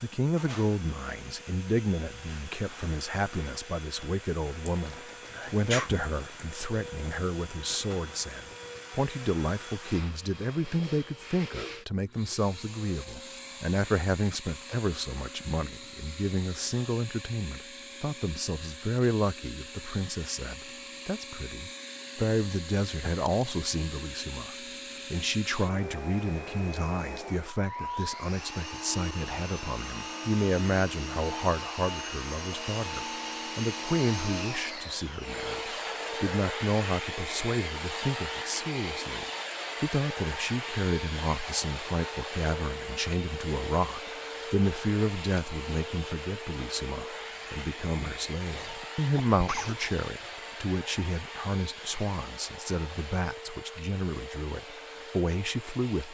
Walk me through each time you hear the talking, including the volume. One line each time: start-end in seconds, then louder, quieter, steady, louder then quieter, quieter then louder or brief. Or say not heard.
0.0-56.0 steady.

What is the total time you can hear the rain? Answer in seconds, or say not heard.
not heard.